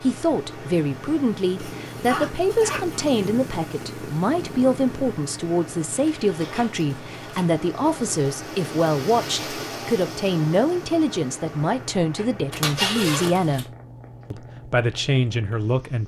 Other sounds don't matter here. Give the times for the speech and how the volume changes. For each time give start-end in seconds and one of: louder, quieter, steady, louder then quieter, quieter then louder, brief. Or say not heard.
0.0-16.0 steady.